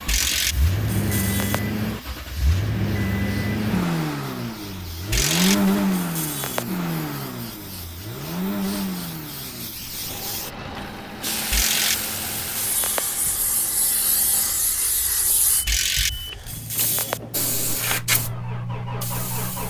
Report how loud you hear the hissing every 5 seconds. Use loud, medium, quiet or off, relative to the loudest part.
quiet, medium, loud, loud.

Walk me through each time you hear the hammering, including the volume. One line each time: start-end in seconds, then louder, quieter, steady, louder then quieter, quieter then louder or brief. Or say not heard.
not heard.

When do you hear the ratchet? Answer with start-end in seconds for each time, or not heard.
0.1-1.6, 5.1-6.7, 11.5-13.1, 15.7-17.2.